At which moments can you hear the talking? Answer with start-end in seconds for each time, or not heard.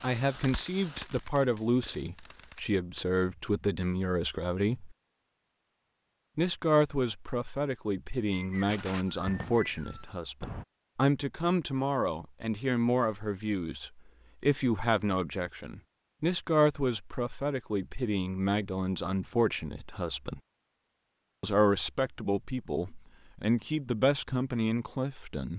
0.0-5.0, 6.3-20.4, 21.4-25.5.